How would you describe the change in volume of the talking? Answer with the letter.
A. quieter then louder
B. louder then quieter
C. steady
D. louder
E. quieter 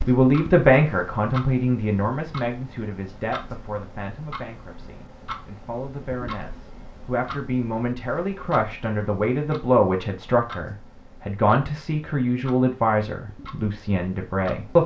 A.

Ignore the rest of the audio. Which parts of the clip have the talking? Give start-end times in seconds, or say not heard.
0.1-14.8.